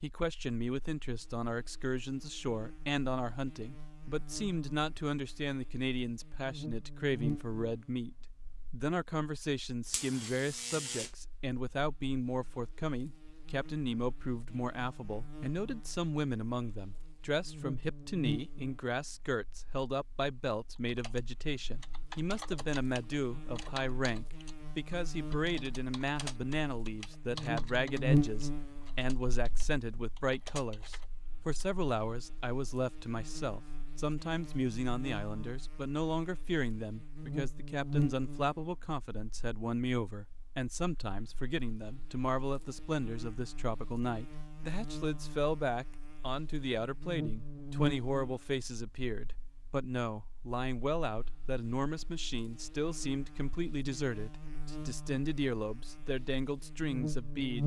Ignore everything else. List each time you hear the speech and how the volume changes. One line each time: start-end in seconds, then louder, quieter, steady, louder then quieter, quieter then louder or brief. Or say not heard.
0.0-57.6 steady.